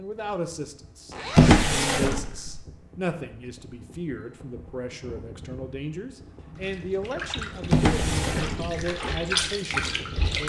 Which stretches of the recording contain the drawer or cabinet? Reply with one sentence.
You can hear the drawer or cabinet from 1.4 to 2.6 s and from 7.7 to 8.8 s.